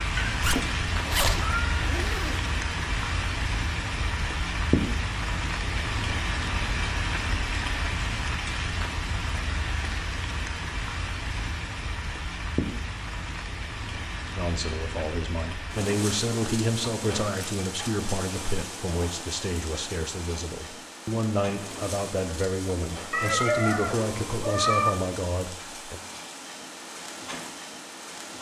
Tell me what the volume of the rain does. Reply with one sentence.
The volume of the rain goes down.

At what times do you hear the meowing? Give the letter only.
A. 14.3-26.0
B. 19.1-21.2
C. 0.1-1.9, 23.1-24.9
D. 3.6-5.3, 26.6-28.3
C.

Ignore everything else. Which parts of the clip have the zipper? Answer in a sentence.
You can hear the zipper from 0.4 to 2.5 s.